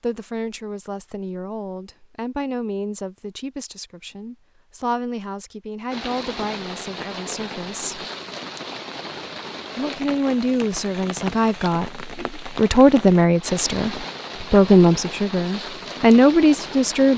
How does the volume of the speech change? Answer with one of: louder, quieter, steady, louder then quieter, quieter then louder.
louder.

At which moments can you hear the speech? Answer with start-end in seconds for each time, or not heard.
0.0-8.1, 9.8-17.1.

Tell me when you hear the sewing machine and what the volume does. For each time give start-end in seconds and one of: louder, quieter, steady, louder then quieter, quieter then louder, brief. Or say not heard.
not heard.